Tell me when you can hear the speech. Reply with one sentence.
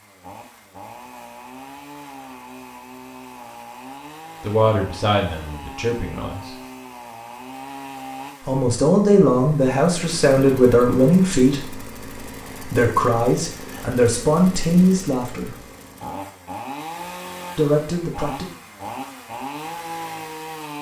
You can hear the speech from 4.4 to 6.5 s, from 8.4 to 11.8 s, from 12.6 to 15.6 s and from 17.6 to 18.4 s.